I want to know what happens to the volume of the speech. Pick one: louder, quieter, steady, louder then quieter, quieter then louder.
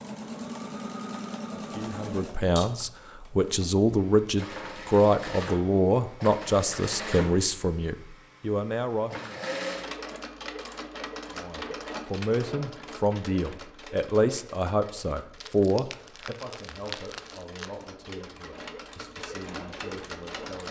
quieter.